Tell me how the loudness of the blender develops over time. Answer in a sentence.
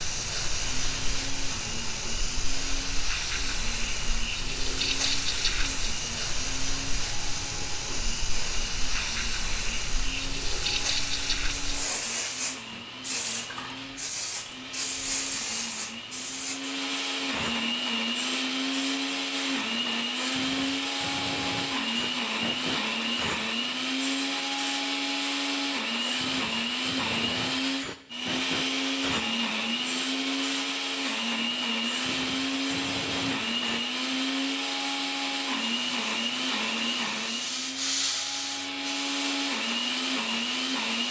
The volume of the blender goes up.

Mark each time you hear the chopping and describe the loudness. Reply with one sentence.
The chopping can't be heard in this clip.